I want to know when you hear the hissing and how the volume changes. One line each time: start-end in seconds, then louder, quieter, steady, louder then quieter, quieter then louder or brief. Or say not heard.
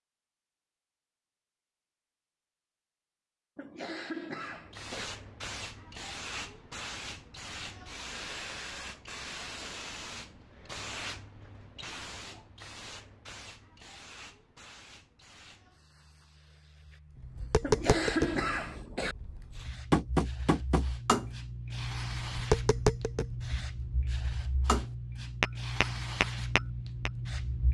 4.3-27.7 quieter then louder.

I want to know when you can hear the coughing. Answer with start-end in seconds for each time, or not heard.
3.5-5.1, 17.6-19.1.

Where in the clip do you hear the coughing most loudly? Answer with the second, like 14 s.
18 s.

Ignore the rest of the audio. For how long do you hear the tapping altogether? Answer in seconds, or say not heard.
10 s.